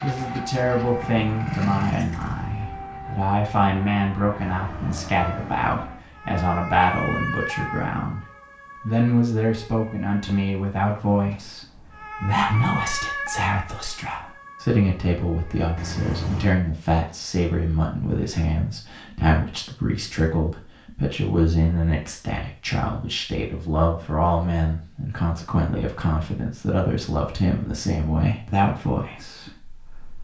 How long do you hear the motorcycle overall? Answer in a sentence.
You can hear the motorcycle for 3 seconds altogether.